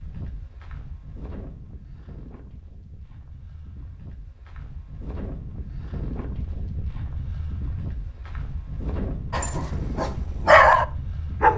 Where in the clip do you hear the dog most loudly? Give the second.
11 s.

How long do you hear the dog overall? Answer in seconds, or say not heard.
2 s.